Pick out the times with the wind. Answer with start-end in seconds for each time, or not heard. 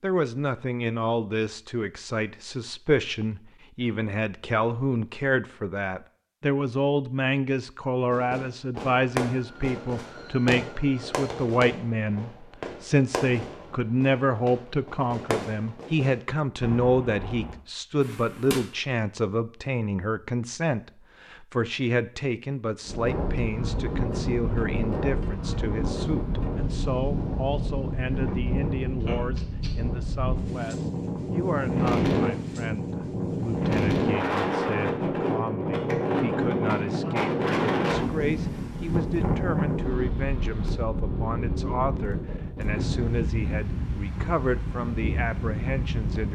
22.9-46.3.